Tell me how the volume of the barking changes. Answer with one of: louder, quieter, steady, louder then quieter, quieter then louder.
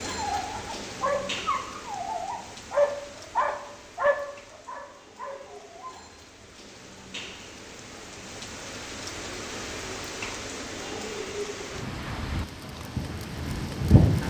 louder then quieter.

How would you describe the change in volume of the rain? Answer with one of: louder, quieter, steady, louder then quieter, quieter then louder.
quieter then louder.